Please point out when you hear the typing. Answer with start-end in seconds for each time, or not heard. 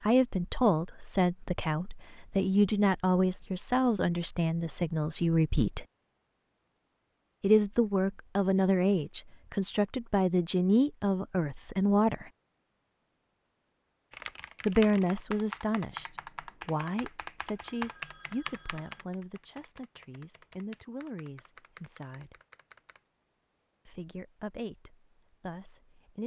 14.1-23.0.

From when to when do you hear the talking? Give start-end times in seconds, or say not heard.
0.0-5.8, 7.4-12.3, 14.7-22.4, 23.9-26.2.